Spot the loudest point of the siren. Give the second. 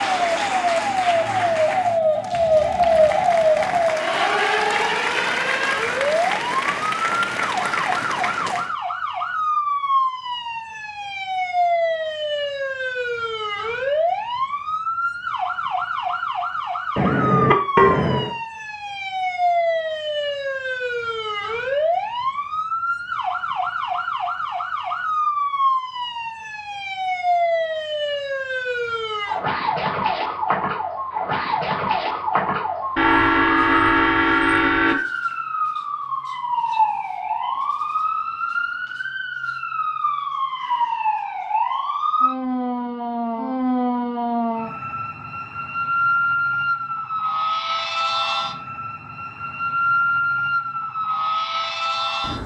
3 s.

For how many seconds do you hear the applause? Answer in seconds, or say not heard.
9 s.